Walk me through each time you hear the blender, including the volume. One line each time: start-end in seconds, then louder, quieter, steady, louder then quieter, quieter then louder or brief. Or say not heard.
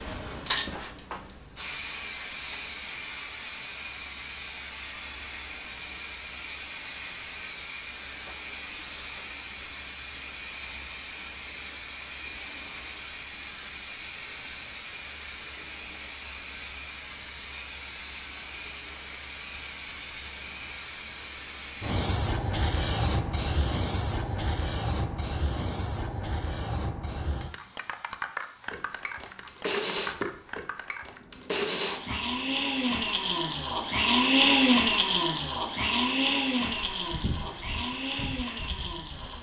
28.7-39.3 louder then quieter.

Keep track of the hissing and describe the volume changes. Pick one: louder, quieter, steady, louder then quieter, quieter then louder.
quieter.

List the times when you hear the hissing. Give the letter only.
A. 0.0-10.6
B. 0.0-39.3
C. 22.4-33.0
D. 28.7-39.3
B.